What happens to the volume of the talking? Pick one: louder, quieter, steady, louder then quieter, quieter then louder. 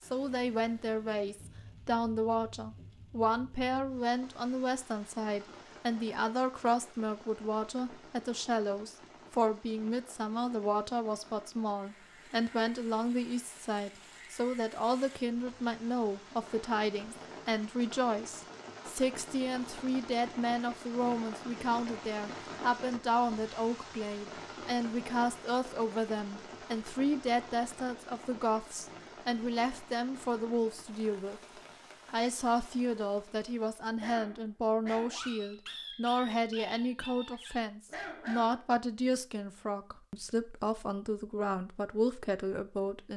steady.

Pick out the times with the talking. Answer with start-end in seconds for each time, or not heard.
0.0-31.4, 32.1-43.1.